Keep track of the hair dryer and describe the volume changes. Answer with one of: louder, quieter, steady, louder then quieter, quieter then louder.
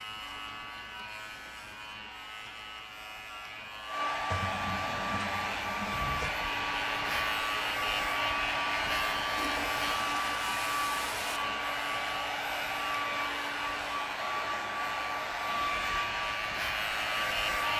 louder.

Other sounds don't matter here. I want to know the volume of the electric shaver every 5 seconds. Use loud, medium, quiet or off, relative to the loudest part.
medium, loud, medium, loud.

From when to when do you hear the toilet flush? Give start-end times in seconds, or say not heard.
4.3-6.3, 9.3-11.4.